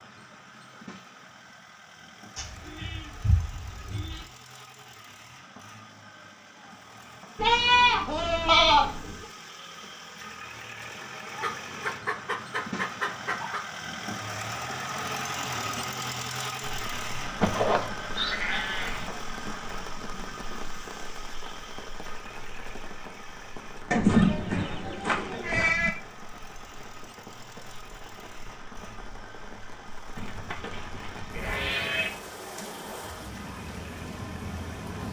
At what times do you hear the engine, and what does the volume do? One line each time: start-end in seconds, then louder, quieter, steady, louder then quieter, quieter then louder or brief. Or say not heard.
0.0-35.0 louder then quieter.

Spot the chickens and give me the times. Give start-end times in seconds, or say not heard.
11.2-13.7, 24.1-25.7.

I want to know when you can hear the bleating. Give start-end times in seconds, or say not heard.
2.4-4.2, 7.3-9.2, 17.4-19.1, 23.9-25.9, 30.1-32.1.